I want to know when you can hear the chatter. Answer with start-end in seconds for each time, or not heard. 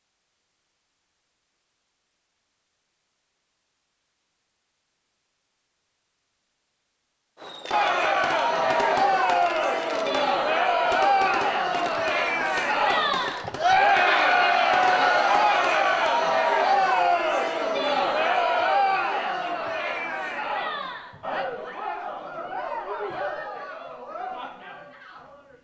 7.7-25.5.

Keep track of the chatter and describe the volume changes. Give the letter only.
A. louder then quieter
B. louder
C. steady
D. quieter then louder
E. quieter
E.